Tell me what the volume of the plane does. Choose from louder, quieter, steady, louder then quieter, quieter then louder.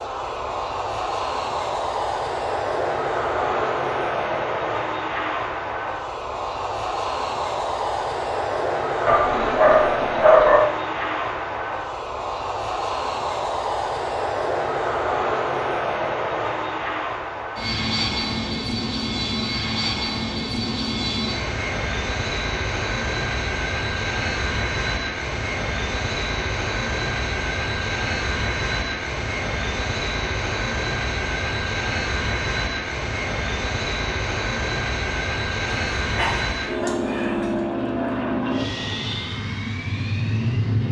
steady.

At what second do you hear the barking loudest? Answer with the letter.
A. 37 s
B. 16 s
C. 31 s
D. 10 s
D.